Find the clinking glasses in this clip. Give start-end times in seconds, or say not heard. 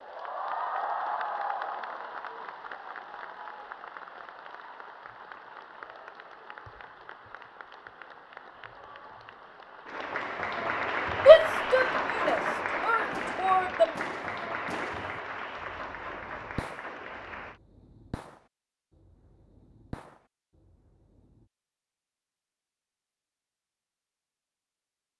not heard.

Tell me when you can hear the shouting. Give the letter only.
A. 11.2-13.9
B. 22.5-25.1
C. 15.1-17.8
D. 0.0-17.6
A.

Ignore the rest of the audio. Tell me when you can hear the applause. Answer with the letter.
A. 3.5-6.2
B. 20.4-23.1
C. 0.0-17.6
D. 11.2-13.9
C.